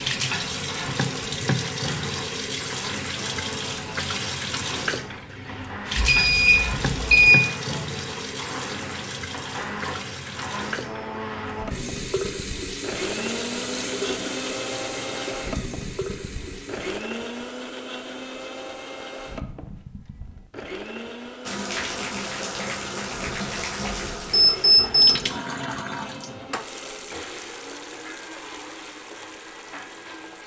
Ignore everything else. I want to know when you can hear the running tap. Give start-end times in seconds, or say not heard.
0.0-17.0, 21.4-30.4.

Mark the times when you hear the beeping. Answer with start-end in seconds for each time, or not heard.
6.0-7.3, 23.8-25.1.